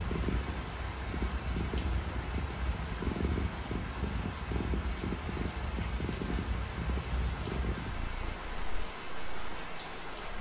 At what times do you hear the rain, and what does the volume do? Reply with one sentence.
The rain can be heard from 0.0 to 10.3 s, at a steady volume.